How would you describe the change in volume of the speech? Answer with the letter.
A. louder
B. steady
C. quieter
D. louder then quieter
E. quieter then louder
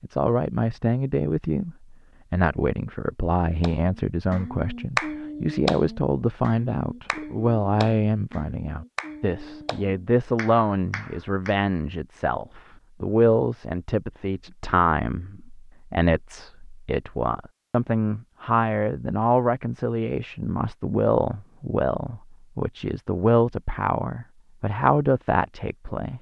B.